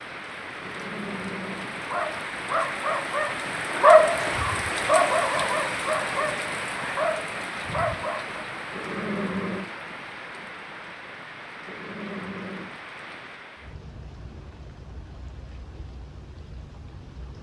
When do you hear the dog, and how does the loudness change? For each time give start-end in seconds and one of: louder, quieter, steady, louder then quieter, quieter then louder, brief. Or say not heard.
1.8-8.4 louder then quieter.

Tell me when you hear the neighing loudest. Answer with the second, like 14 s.
9 s.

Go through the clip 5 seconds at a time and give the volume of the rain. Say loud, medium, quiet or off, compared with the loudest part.
loud, loud, medium, quiet.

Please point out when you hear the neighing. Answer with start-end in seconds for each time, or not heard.
0.6-2.0, 8.7-9.7, 11.7-12.8.